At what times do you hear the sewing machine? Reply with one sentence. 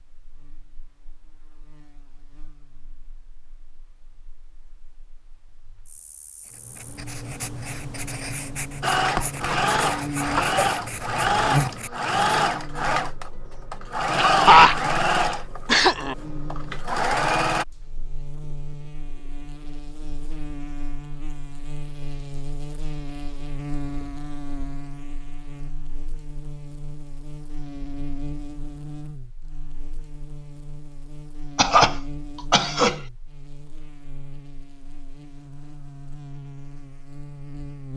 The sewing machine can be heard from 8.8 to 17.6 s.